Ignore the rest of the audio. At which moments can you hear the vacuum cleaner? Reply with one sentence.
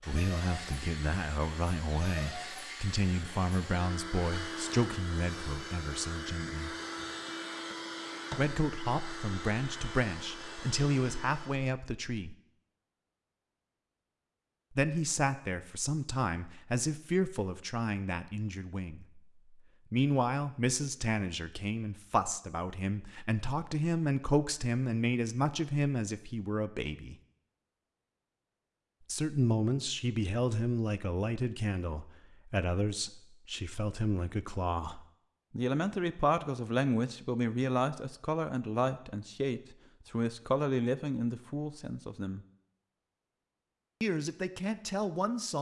You can hear the vacuum cleaner from 0.0 to 11.7 s.